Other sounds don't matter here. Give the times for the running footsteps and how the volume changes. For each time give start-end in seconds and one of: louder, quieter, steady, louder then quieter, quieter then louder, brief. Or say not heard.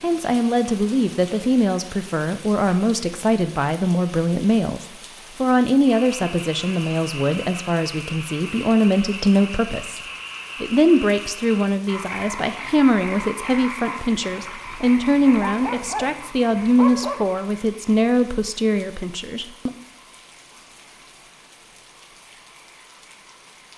not heard.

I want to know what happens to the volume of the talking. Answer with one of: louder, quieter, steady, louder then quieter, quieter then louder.
steady.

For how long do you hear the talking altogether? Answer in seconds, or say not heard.
19 s.